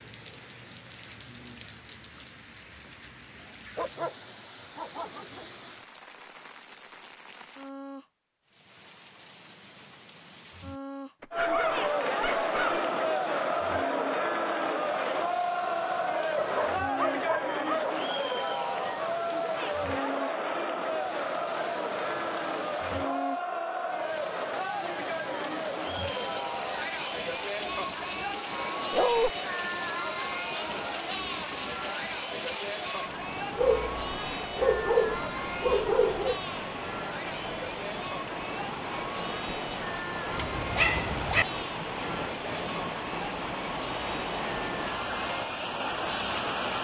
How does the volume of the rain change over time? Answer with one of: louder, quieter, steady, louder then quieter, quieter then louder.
louder.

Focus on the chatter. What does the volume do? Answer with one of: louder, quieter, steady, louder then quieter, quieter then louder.
quieter.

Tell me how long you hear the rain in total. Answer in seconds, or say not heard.
47 s.